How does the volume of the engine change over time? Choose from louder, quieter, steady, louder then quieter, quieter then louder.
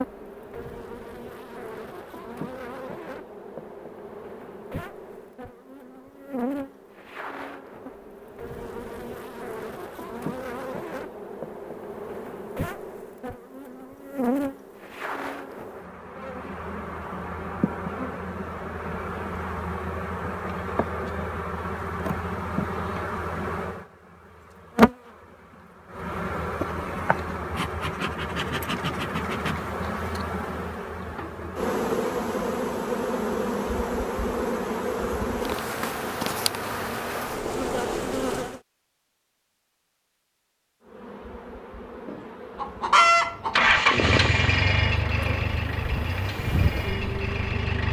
quieter.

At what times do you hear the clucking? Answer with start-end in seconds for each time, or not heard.
42.0-43.9.